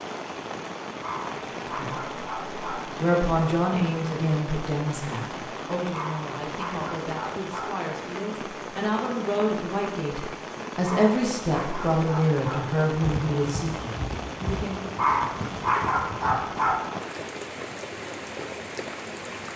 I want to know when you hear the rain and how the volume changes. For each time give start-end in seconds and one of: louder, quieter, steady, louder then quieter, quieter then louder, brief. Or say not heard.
0.0-19.5 steady.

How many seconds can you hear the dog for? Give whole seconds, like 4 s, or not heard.
7 s.